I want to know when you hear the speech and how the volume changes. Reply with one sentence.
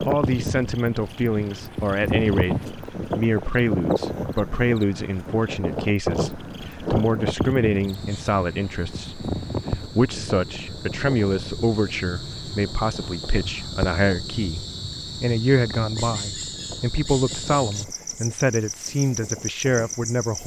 You can hear the speech from 0.1 to 20.4 s, at a steady volume.